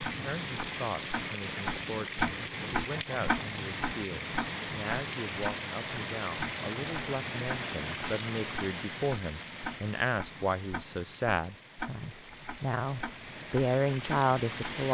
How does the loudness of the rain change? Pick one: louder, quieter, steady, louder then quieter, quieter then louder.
quieter.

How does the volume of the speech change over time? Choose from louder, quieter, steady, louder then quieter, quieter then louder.
louder.